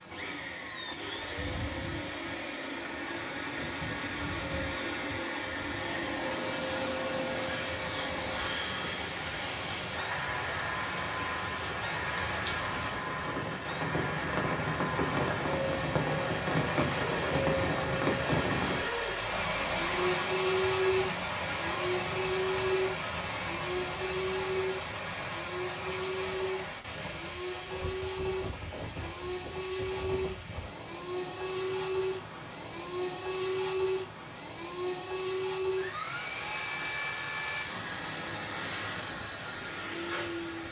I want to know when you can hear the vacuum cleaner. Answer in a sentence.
The vacuum cleaner can be heard from 0.0 to 40.6 s.